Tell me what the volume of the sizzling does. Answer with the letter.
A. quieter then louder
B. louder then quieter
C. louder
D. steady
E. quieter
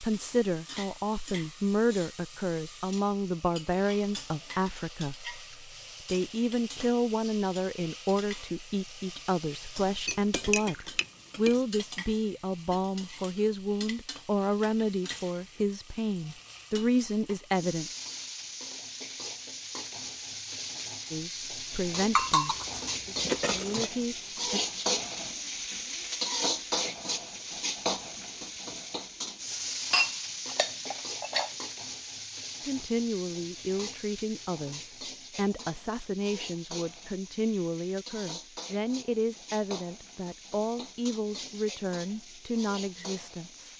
B.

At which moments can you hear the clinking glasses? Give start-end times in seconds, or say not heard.
10.1-11.6, 22.1-23.9, 29.9-31.5.